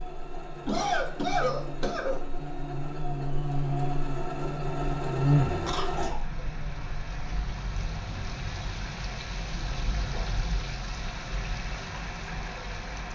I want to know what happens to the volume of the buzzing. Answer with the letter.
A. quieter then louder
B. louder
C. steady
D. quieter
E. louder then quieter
E.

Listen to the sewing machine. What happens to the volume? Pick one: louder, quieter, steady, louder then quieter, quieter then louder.
louder.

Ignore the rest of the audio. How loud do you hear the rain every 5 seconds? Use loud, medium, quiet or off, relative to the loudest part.
off, loud, loud.